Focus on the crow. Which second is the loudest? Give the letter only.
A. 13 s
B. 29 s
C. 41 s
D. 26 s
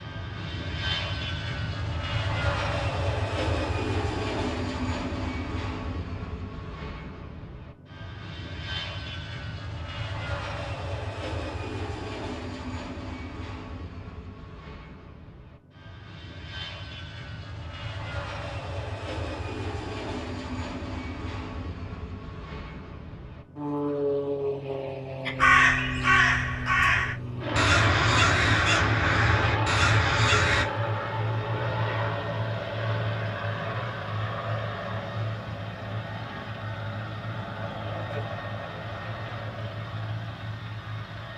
D.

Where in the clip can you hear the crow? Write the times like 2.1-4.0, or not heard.
25.2-30.6.